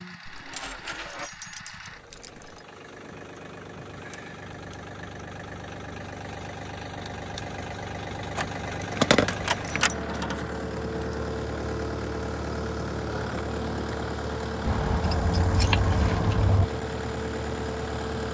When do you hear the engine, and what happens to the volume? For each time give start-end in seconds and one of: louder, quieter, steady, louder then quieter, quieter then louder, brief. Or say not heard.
0.0-18.3 louder.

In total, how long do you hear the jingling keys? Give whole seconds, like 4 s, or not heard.
6 s.